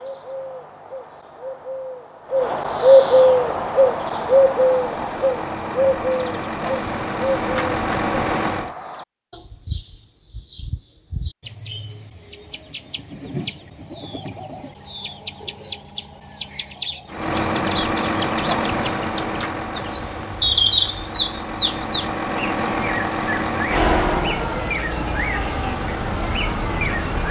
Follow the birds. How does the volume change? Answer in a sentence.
The volume of the birds goes down, then up.